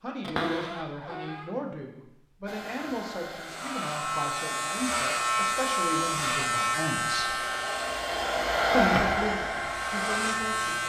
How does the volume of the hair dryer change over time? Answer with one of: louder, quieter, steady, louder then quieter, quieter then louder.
louder.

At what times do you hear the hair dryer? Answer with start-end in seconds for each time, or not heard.
2.5-10.8.